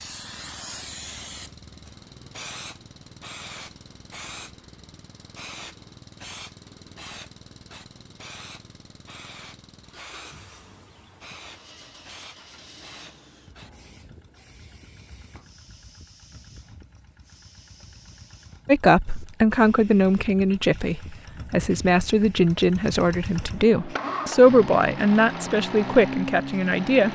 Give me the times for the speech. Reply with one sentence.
You can hear the speech from 18.6 to 27.1 s.